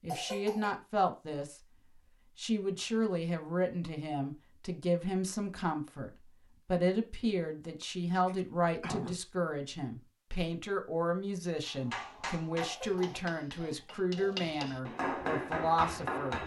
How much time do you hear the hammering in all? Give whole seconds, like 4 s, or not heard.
5 s.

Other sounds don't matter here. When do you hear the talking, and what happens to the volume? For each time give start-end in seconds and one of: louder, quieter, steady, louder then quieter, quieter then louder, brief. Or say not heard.
0.0-16.4 steady.